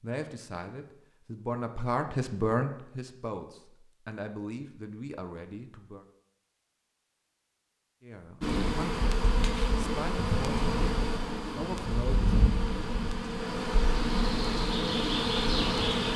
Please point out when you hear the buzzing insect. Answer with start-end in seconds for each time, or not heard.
8.4-16.1.